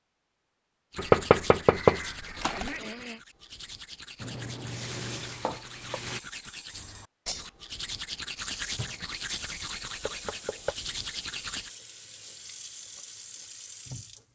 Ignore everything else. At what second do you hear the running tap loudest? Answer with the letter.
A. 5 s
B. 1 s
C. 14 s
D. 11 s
A.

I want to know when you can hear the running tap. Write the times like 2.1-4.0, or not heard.
4.2-6.2, 8.3-14.2.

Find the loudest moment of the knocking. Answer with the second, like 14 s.
1 s.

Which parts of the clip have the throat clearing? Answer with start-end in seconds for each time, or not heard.
2.4-3.2.